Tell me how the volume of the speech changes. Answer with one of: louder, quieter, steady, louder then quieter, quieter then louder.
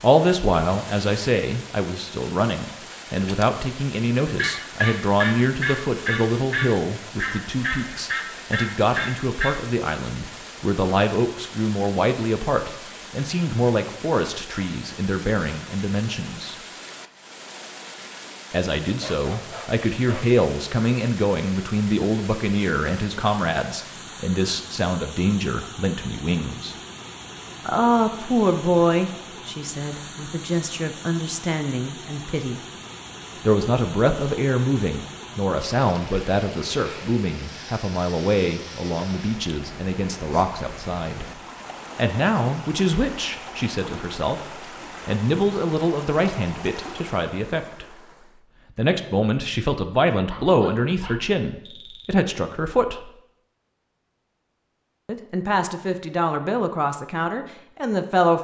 steady.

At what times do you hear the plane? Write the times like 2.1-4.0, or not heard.
not heard.